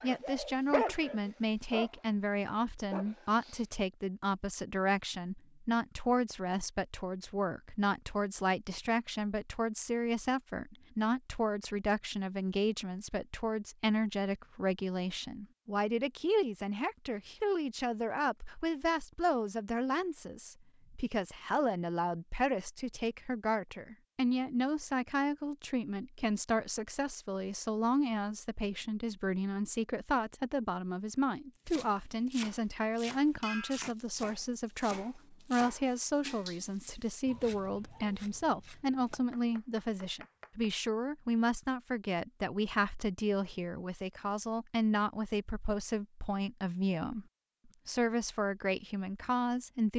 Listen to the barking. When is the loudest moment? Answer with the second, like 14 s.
1 s.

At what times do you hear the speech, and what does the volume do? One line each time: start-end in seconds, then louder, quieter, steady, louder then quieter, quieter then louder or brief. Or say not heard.
0.0-47.2 steady
47.9-49.9 brief.